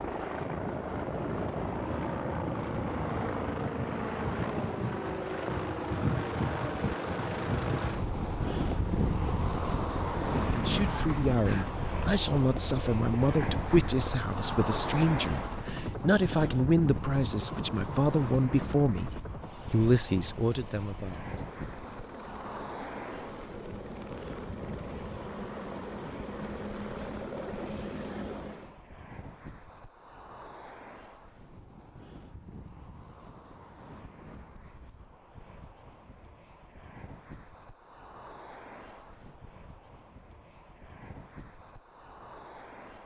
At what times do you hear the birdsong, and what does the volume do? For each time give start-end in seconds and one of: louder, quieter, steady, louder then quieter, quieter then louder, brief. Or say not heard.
not heard.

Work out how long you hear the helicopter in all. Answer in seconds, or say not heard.
29 s.